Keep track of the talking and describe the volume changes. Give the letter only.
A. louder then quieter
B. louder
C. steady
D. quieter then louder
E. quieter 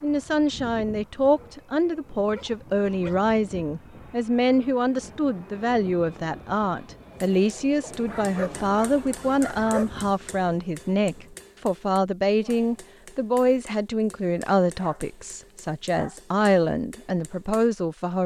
C.